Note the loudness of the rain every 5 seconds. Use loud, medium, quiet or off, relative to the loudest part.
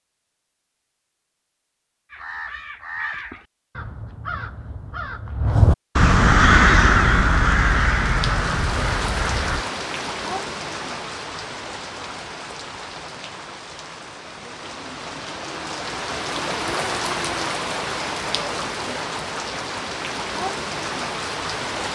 off, loud, medium, loud, loud.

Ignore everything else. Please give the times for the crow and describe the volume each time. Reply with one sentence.
You can hear the crow from 2.1 to 9.7 s, getting louder then quieter.